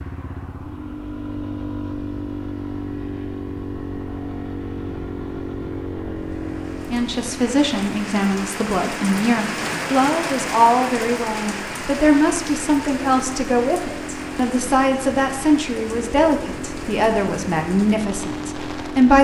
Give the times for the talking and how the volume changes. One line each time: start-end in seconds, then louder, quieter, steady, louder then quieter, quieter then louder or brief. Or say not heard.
6.9-19.1 steady.